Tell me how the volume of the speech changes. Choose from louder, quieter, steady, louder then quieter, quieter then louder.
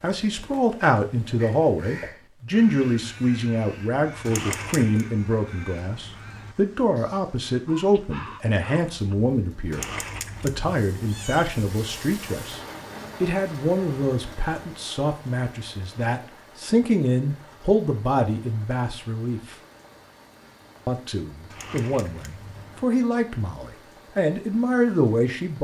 steady.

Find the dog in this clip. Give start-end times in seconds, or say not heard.
not heard.